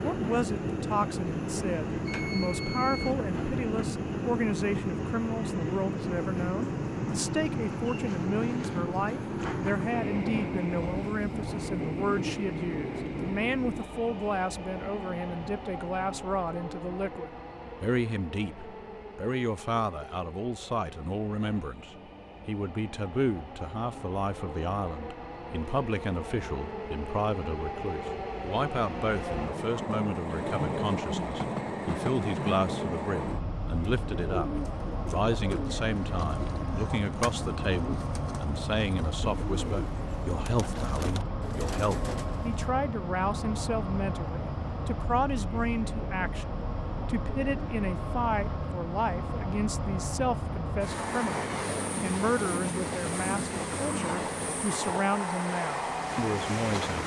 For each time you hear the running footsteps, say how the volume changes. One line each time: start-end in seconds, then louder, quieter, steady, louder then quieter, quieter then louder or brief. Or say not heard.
not heard.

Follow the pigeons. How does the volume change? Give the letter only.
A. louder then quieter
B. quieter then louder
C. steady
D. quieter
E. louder
C.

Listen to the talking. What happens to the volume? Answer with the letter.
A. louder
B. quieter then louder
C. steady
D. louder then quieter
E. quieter
C.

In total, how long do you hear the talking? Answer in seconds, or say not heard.
57 s.